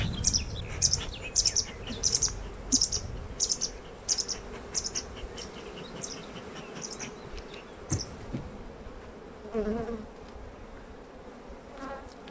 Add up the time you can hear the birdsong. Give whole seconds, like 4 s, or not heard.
9 s.